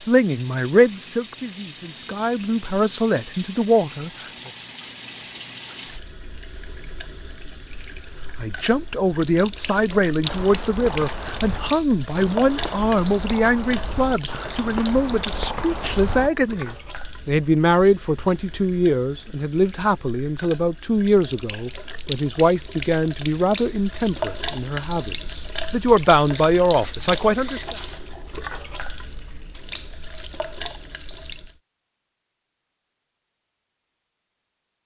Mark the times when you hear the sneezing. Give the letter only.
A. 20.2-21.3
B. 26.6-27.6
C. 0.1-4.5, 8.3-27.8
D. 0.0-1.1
B.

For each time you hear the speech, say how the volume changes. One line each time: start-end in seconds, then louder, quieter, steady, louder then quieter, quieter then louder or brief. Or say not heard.
0.1-4.5 quieter then louder
8.3-27.8 steady.